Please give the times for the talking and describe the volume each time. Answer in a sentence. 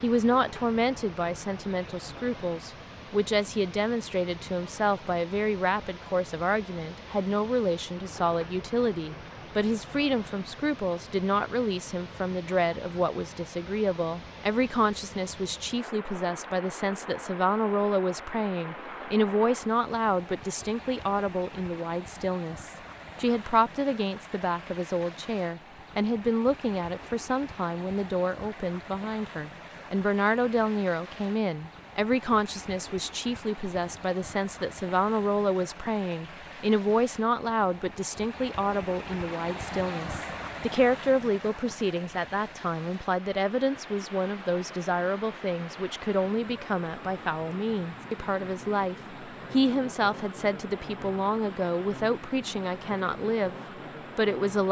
The talking can be heard from 0.0 to 53.5 s, at a steady volume; and briefly from 54.1 to 54.6 s.